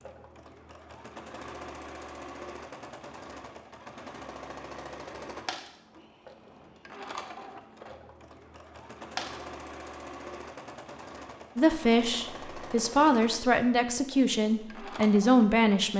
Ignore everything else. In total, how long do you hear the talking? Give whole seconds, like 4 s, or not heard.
4 s.